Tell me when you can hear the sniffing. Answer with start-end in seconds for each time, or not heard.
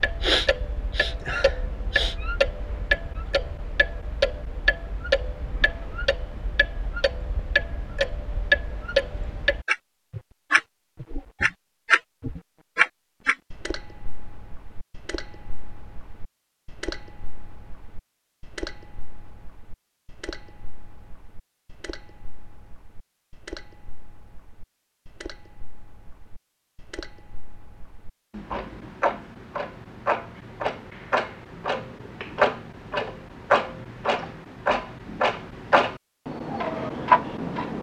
0.2-2.1.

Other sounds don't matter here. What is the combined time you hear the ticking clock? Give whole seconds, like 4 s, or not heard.
38 s.